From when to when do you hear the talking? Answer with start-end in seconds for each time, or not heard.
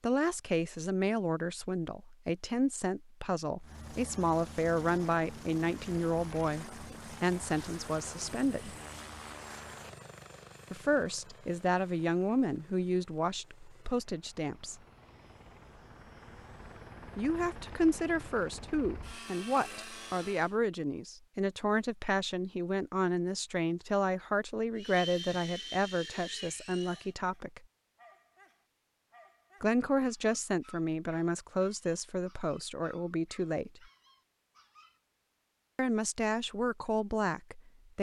0.0-8.8, 10.7-14.8, 17.1-27.6, 29.6-33.8, 35.8-37.9.